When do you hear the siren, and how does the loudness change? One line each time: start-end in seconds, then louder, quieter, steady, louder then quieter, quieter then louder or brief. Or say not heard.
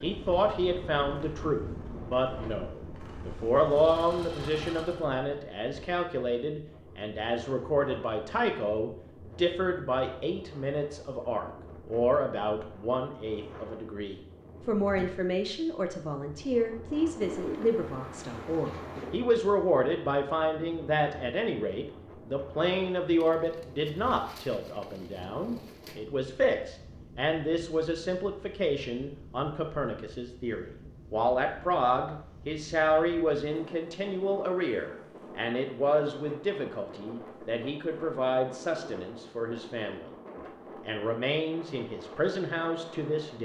not heard.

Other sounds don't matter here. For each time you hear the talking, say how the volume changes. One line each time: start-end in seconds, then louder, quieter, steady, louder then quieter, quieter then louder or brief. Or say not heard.
0.0-40.1 steady
40.9-43.4 brief.